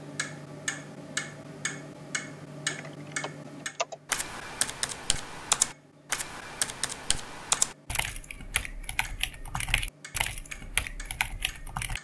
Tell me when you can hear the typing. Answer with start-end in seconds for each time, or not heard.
2.6-11.9.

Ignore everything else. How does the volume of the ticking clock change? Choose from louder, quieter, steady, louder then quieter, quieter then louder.
quieter.